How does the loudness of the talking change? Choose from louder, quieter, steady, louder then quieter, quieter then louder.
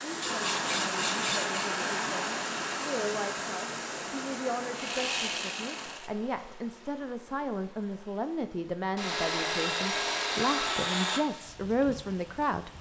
louder.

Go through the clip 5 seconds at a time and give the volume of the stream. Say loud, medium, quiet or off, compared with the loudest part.
loud, quiet, quiet.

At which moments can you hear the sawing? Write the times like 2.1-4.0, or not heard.
0.2-1.6, 4.8-6.1, 8.9-11.2.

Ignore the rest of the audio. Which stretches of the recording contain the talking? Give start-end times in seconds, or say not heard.
0.0-12.7.